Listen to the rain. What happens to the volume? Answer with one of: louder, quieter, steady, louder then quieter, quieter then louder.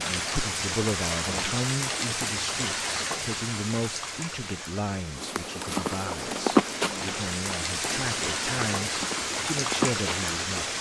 quieter then louder.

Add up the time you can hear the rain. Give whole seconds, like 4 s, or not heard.
11 s.